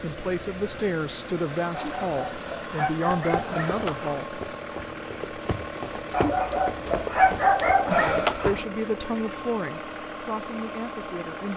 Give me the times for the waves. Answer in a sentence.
The waves can't be heard in this clip.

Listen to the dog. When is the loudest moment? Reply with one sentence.
The volume of the dog peaks at 7 seconds.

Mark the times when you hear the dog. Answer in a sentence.
You can hear the dog from 1.7 to 4.1 s and from 6.1 to 8.7 s.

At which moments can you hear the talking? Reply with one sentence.
You can hear the talking from 0.0 to 4.4 s and from 7.9 to 11.5 s.